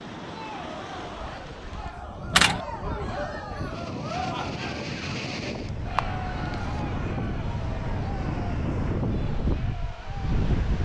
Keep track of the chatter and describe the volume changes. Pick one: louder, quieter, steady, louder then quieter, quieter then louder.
louder then quieter.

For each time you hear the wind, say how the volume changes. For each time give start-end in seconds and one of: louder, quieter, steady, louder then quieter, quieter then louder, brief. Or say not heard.
0.0-10.8 louder.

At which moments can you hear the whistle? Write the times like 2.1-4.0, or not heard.
not heard.